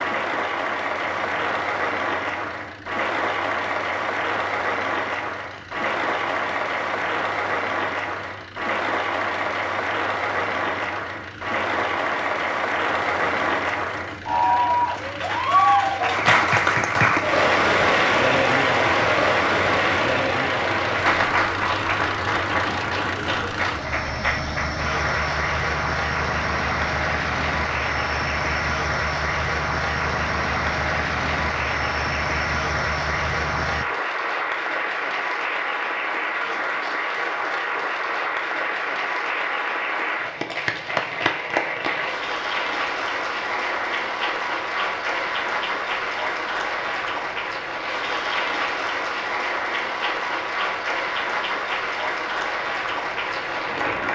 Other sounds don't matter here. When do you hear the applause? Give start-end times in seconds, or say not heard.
0.0-54.1.